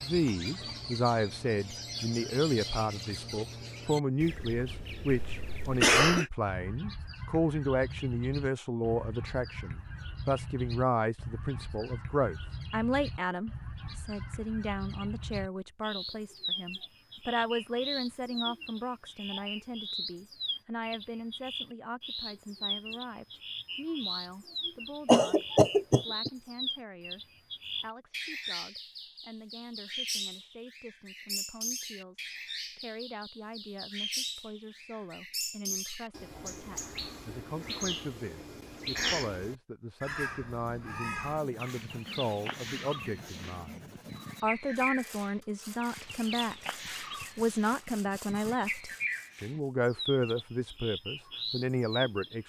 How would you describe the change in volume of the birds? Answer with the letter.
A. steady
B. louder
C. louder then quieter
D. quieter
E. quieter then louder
A.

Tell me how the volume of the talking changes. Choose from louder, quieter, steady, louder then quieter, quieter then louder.
quieter then louder.